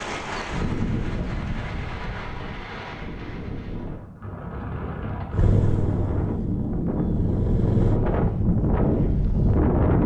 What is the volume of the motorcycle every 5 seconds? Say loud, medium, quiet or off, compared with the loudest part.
off, loud.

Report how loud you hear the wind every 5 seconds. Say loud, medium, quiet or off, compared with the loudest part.
medium, loud.